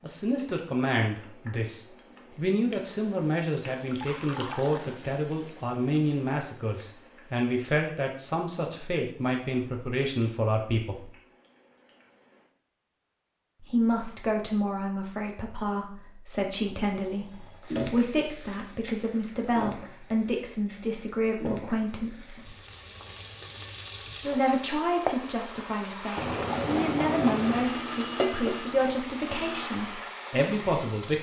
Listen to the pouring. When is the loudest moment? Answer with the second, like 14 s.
27 s.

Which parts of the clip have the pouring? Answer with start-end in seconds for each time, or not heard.
3.8-5.0, 16.6-17.6, 26.1-27.8.